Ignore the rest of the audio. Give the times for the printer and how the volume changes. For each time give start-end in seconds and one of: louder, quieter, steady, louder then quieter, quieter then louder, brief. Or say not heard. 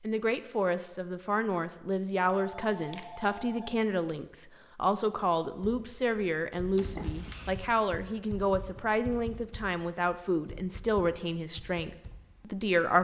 not heard.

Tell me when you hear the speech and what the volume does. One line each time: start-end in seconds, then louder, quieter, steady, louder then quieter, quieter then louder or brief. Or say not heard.
0.0-12.9 steady.